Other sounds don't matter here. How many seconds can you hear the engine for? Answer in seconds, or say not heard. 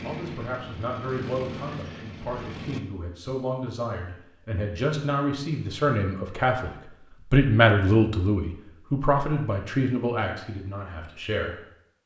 3 s.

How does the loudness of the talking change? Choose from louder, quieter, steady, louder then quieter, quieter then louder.
louder then quieter.